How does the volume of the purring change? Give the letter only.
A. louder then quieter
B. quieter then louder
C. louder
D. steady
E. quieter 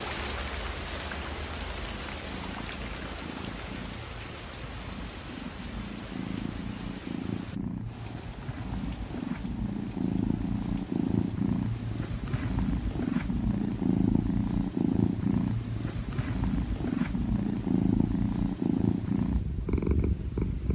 C.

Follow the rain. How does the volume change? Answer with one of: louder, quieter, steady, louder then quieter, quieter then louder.
quieter.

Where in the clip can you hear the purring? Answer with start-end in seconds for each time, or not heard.
0.0-20.6.